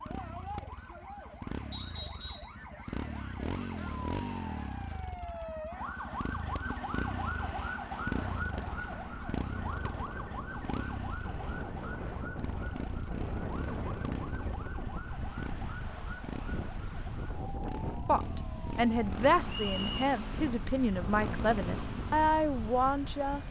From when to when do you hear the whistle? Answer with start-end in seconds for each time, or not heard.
1.7-2.5, 19.4-20.1.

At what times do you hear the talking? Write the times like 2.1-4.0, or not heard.
18.1-23.4.